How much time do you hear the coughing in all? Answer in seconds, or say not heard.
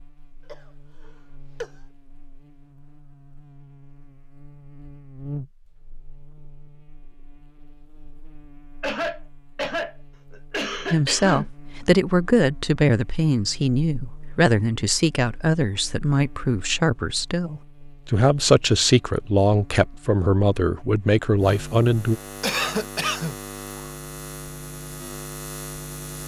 5 s.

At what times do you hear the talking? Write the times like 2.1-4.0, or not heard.
10.9-22.2.